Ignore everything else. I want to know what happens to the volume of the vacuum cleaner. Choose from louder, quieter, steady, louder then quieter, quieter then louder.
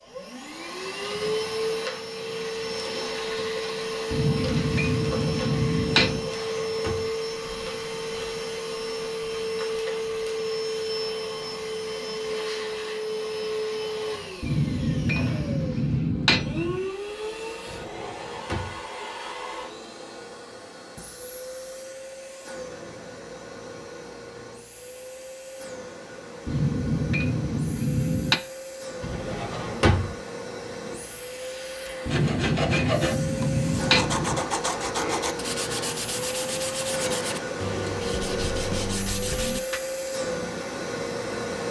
quieter then louder.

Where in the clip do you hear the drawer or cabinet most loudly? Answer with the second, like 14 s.
30 s.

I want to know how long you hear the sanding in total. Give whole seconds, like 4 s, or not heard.
8 s.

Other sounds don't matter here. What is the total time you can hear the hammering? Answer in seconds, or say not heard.
9 s.